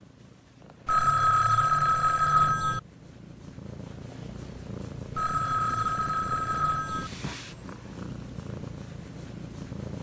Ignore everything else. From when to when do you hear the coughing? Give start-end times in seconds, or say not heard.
not heard.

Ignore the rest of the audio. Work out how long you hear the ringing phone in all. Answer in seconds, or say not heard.
4 s.